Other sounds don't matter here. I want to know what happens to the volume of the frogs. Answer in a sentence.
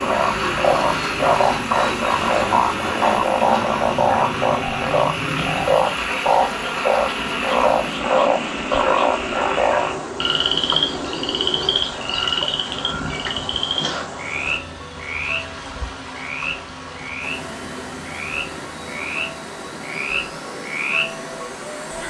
The volume of the frogs goes down.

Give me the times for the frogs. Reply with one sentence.
You can hear the frogs from 0.0 to 22.0 s.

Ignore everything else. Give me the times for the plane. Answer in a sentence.
The plane can be heard from 0.0 to 22.0 s.